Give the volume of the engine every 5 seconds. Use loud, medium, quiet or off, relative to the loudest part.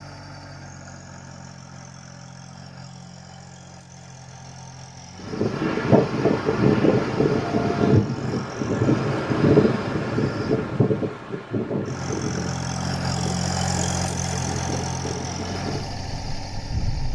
quiet, quiet, loud, medium.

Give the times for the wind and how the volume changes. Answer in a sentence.
The wind can be heard from 5.2 to 17.0 s, getting quieter.